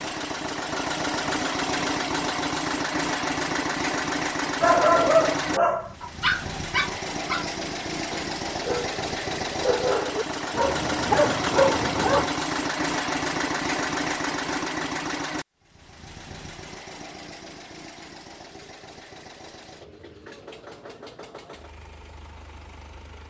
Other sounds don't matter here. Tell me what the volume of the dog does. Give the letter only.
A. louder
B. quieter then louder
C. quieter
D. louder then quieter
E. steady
B.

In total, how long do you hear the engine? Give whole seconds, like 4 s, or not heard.
23 s.